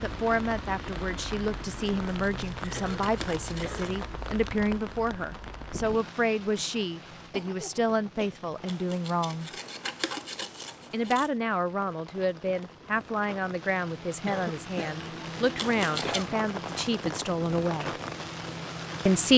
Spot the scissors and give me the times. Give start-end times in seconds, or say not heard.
2.0-4.0, 8.7-11.3, 15.6-16.2.